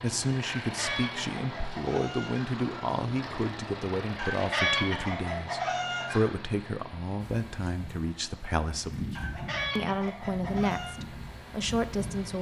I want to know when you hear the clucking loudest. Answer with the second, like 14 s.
5 s.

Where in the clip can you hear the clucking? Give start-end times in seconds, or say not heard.
0.5-2.5, 4.2-6.3, 9.2-10.9.